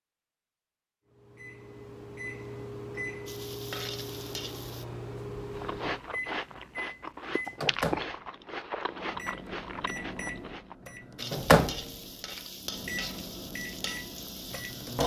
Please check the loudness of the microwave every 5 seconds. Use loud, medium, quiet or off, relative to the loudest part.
medium, medium, loud.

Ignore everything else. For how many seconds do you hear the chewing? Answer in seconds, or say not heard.
5 s.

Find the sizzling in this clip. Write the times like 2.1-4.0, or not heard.
3.2-4.8, 11.2-15.0.